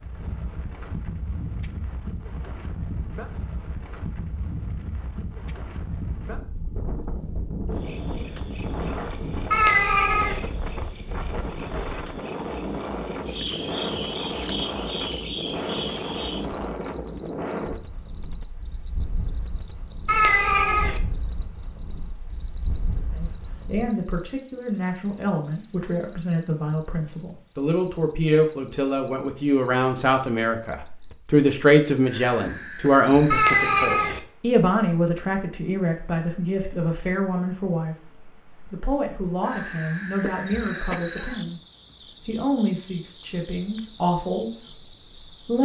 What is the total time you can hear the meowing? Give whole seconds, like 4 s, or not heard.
3 s.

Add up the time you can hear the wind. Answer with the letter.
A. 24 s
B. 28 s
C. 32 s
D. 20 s
A.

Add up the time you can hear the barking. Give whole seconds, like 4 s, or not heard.
not heard.